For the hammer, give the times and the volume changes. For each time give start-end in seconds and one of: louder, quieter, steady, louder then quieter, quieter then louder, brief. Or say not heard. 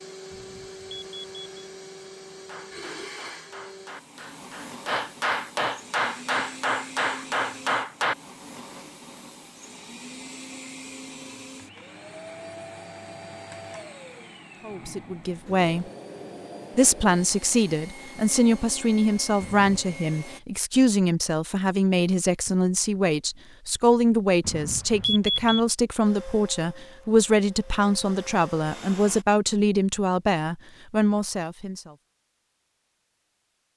2.4-8.2 louder.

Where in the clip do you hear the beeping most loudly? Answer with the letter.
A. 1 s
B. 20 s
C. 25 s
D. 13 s
C.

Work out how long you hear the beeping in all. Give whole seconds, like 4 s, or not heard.
3 s.